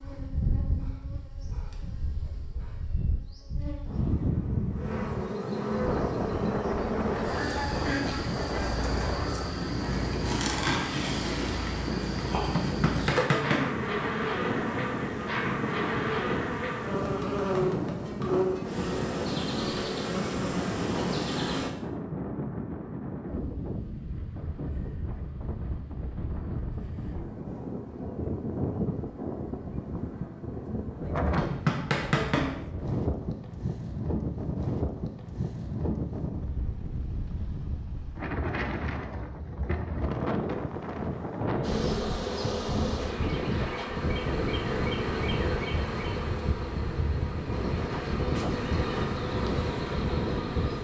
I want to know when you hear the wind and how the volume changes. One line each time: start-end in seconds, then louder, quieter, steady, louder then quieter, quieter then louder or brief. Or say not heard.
0.0-50.7 steady.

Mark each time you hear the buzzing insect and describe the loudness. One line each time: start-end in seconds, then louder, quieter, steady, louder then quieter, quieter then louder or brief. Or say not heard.
0.0-21.7 louder
41.6-50.7 steady.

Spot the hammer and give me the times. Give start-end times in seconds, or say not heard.
12.5-13.8, 31.4-32.6.